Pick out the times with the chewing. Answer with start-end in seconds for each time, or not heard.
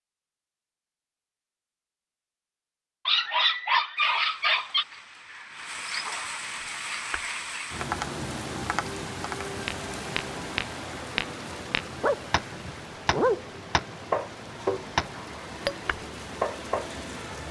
not heard.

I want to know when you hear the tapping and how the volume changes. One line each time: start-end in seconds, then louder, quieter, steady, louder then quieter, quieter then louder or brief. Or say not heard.
7.1-16.9 louder.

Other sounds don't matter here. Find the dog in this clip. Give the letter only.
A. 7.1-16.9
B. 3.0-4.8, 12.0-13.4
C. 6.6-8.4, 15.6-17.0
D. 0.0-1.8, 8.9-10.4
B.